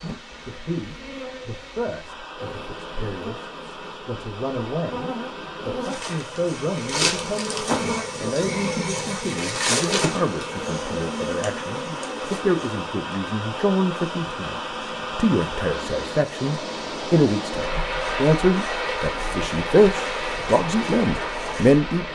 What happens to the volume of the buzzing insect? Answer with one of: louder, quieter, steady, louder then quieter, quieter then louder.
louder then quieter.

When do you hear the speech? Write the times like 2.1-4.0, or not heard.
0.0-22.1.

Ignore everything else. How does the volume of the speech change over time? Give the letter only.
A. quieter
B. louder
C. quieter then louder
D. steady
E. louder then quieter
B.